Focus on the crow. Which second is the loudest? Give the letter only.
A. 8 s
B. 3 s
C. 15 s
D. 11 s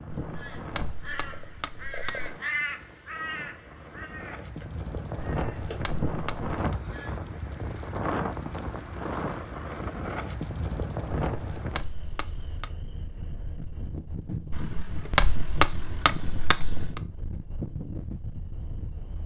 B.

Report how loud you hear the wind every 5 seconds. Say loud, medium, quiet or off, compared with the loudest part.
medium, loud, loud, medium.